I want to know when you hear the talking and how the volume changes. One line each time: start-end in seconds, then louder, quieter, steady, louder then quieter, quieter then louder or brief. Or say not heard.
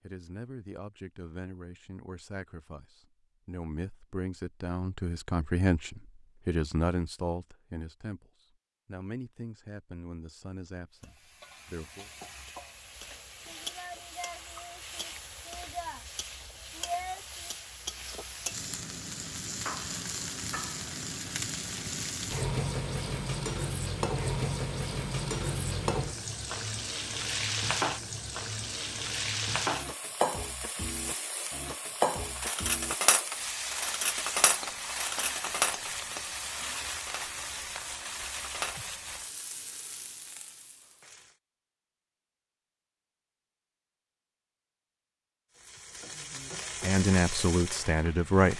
0.0-12.1 louder then quieter
46.8-48.5 brief.